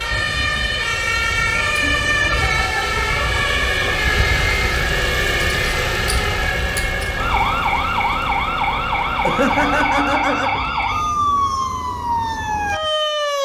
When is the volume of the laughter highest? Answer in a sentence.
The volume of the laughter peaks at 10 seconds.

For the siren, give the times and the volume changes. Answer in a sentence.
You can hear the siren from 0.0 to 13.4 s, at a steady volume.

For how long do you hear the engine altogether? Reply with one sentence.
You can hear the engine for 10 seconds altogether.